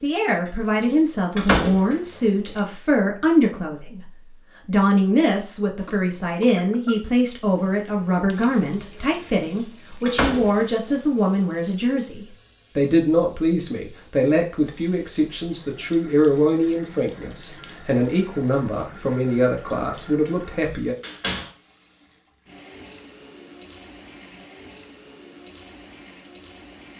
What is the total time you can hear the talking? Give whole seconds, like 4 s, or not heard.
21 s.